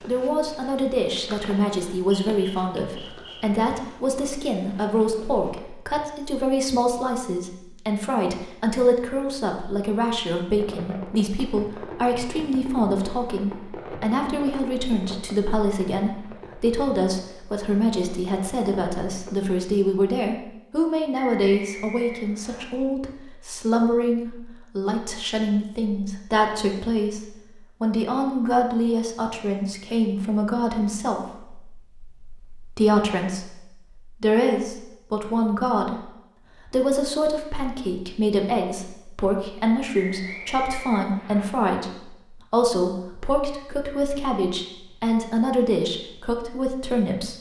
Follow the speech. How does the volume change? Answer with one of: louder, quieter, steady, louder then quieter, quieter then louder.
steady.